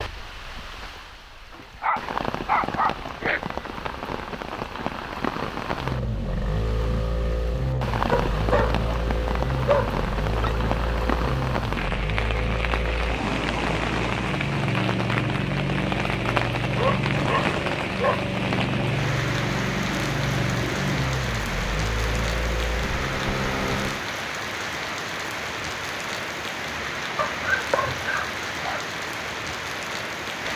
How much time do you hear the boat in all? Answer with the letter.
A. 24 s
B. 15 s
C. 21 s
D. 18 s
D.